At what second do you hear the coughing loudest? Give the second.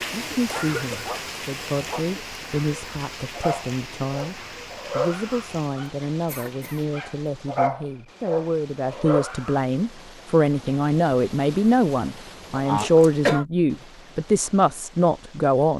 13 s.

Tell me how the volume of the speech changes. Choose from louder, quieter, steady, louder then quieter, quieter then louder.
louder.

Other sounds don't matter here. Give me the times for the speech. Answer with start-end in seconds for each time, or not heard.
0.1-15.7.